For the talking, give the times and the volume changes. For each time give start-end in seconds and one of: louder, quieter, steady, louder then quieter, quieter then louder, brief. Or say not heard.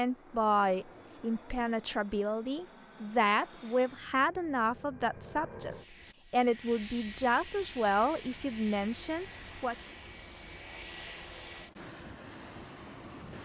0.0-9.8 steady.